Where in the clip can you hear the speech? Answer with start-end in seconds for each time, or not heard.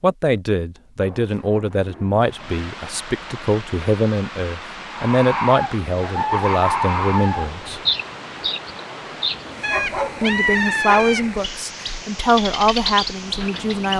0.0-7.8, 10.2-13.9.